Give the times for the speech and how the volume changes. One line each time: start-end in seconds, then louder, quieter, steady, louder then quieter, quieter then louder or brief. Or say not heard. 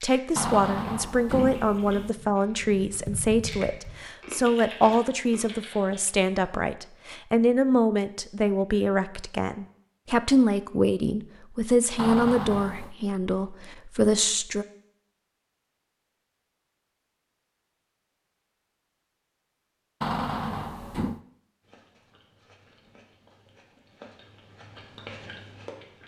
0.0-14.7 steady.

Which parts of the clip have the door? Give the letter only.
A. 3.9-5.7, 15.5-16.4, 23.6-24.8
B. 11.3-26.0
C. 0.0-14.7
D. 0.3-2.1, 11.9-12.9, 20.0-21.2
D.